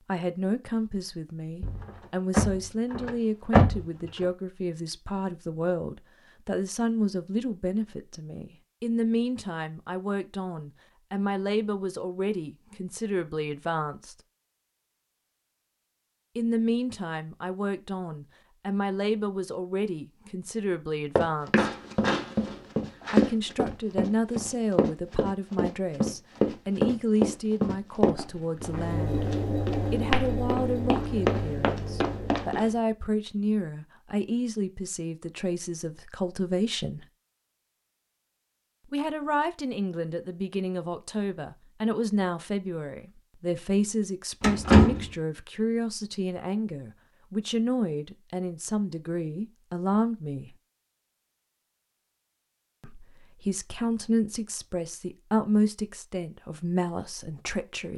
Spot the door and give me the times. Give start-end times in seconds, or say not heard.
1.6-4.2, 21.6-23.3, 44.4-45.1.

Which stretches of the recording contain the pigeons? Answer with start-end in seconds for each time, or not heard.
not heard.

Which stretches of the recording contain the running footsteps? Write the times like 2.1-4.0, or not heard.
21.1-32.7.